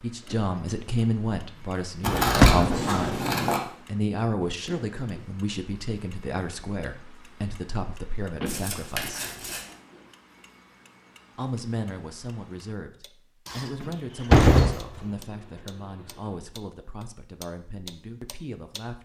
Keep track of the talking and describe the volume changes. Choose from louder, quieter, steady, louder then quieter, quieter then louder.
quieter.